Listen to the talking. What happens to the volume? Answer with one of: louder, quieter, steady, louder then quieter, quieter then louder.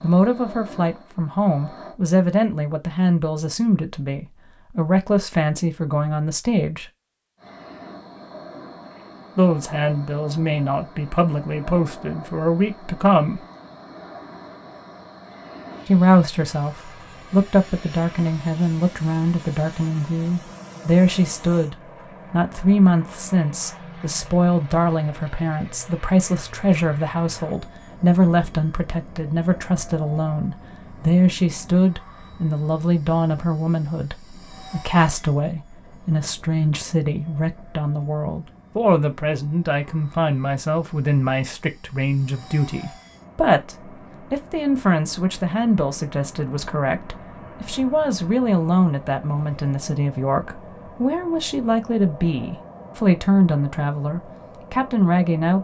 steady.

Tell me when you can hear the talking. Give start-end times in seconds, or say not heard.
0.0-6.8, 9.3-13.4, 15.8-55.5.